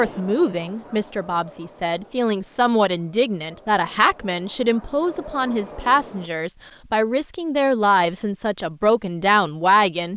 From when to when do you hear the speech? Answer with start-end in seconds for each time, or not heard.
0.0-10.1.